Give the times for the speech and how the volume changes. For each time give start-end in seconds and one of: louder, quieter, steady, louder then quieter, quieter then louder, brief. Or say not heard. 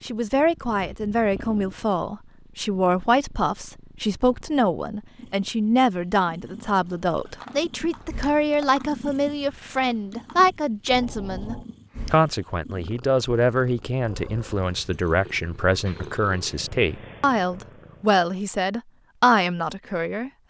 0.0-20.4 steady.